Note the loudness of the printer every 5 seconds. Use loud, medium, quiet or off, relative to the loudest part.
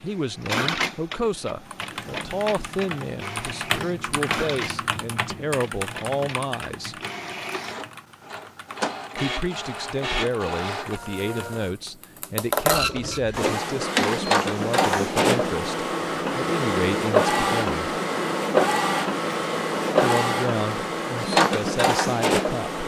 medium, quiet, loud, loud, loud.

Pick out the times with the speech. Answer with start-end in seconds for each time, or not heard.
0.0-7.0, 9.2-17.8, 20.0-22.8.